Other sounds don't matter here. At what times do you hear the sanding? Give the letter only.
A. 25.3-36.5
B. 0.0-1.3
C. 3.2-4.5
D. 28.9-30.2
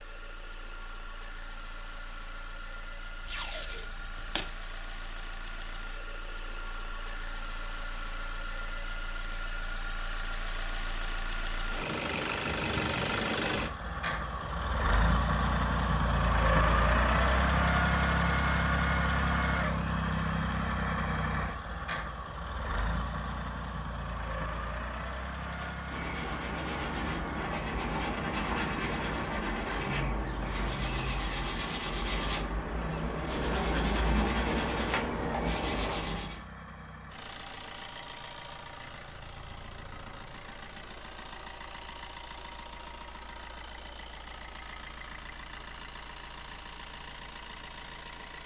A.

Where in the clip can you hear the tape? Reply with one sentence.
You can hear the tape from 3.2 to 4.5 s.